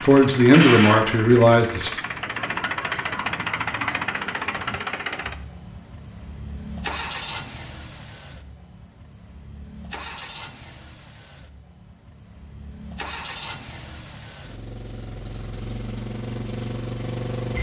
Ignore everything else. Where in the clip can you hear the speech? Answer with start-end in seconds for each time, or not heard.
0.0-1.9.